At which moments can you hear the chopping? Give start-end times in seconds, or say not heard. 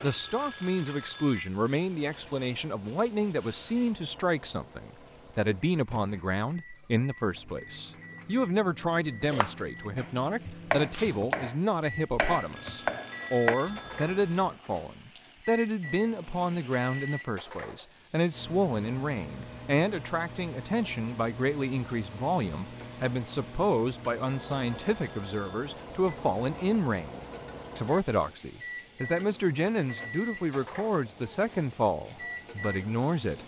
9.2-14.6.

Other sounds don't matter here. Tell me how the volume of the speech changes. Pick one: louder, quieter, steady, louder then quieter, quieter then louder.
steady.